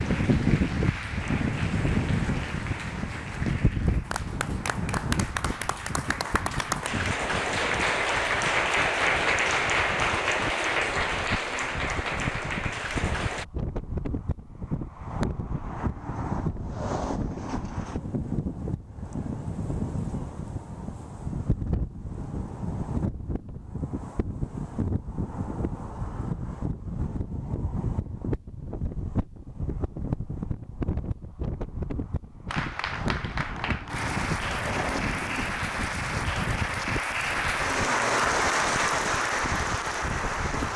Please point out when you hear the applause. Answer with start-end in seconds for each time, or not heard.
0.0-13.4, 32.5-40.7.